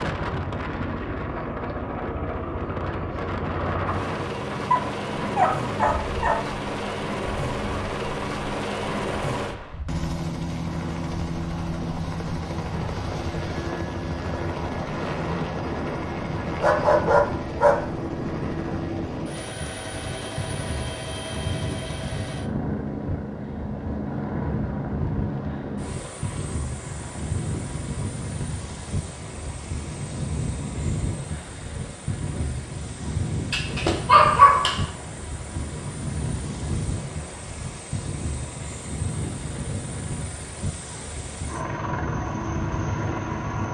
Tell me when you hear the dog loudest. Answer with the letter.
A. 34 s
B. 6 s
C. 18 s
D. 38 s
A.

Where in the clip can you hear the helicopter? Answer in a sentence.
The helicopter can be heard from 0.0 to 43.6 s.